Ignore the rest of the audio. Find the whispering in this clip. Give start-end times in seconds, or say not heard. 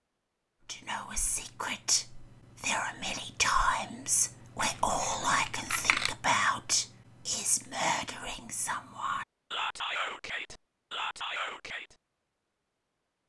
0.7-11.9.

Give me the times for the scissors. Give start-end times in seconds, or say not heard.
4.5-6.2.